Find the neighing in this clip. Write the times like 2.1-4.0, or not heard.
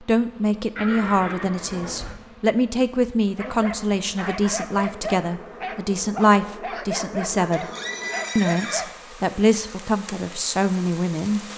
0.8-2.1, 7.5-8.9.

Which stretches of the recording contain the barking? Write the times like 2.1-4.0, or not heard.
3.4-8.9.